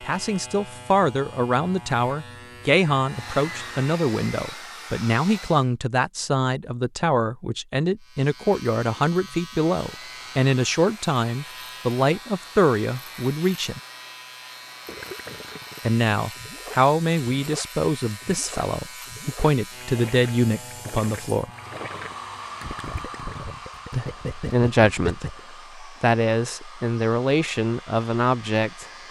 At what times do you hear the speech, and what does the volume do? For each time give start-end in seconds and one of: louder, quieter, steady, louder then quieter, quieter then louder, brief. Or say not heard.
0.0-13.8 steady
15.8-21.5 quieter then louder
23.9-28.9 quieter then louder.